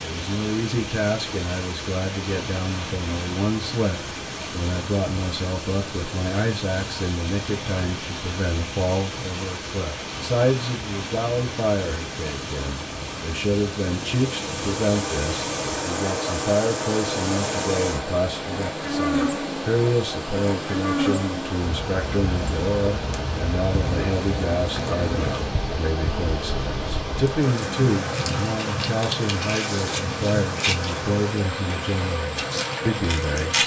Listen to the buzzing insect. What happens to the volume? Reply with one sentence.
The loudness of the buzzing insect stays about the same.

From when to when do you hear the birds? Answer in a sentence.
You can't hear the birds here.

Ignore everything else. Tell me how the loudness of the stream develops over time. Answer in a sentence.
The loudness of the stream stays about the same.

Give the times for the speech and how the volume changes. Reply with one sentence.
You can hear the speech from 0.0 to 33.6 s, at a steady volume.